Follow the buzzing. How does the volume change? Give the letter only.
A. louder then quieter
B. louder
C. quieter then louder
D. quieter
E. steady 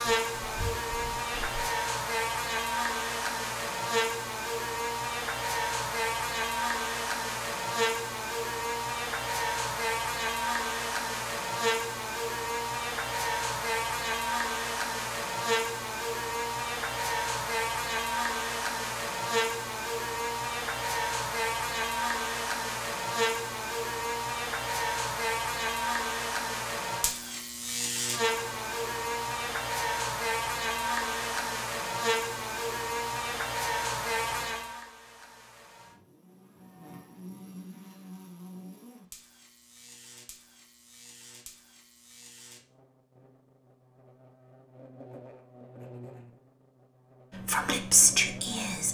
D.